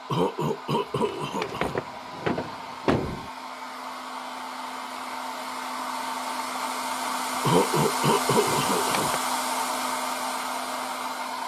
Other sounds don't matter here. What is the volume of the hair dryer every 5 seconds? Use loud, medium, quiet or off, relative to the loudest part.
medium, loud, loud.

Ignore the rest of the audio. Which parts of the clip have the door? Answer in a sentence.
The door can be heard from 0.9 to 3.3 s and from 8.4 to 9.2 s.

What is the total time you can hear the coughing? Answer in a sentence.
The coughing can be heard for 3 seconds in total.